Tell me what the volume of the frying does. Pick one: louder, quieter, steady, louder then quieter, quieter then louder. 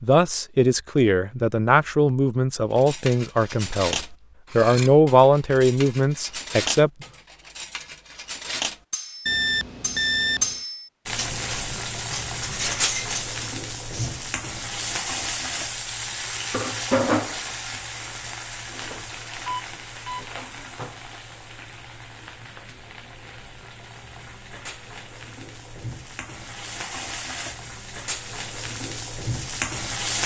quieter then louder.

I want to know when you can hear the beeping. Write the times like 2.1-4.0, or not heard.
9.2-10.6, 19.4-20.2.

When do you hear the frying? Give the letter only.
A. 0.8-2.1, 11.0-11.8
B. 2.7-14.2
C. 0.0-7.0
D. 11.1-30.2
D.